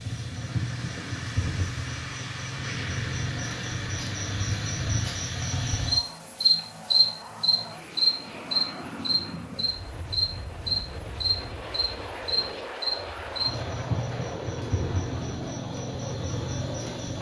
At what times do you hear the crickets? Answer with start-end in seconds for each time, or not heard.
0.0-17.1.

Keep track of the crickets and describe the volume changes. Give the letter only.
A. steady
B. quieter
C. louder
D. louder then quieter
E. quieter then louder
D.